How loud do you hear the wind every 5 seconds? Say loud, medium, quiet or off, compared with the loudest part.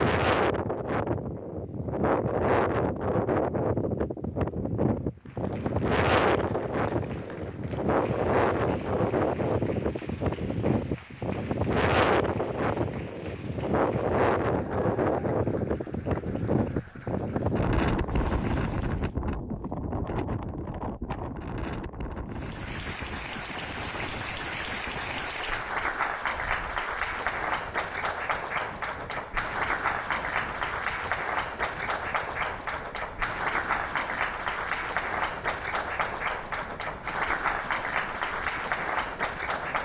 loud, loud, loud, loud, medium, quiet, quiet, quiet.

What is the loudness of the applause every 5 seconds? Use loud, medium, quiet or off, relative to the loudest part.
off, quiet, quiet, quiet, medium, loud, loud, loud.